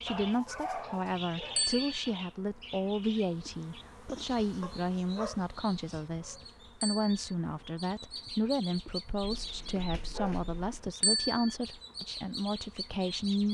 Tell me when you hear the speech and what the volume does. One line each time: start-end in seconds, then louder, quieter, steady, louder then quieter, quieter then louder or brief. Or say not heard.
0.0-13.5 steady.